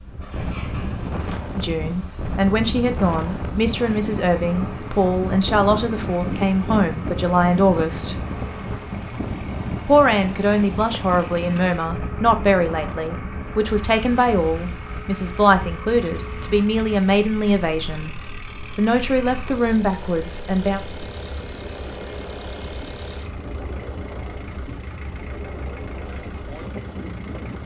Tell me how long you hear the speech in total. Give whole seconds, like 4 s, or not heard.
17 s.